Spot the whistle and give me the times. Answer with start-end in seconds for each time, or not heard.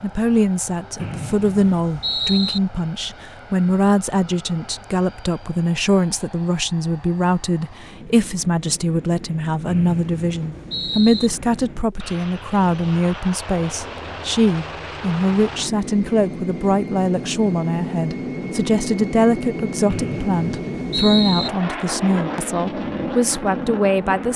0.9-2.6, 9.7-11.3, 19.9-21.5.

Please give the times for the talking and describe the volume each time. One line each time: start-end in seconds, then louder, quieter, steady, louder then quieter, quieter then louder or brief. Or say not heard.
0.0-24.3 steady.